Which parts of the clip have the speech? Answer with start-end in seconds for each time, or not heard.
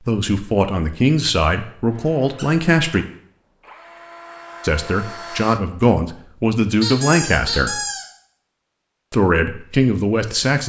0.0-3.0, 4.6-7.8, 9.1-10.6.